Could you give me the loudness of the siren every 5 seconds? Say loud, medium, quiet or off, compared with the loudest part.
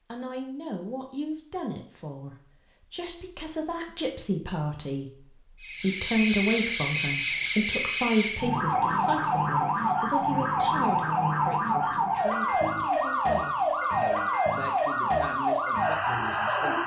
off, loud, loud, loud.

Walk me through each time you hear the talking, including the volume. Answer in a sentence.
You can hear the talking from 0.1 to 16.8 s, getting louder then quieter.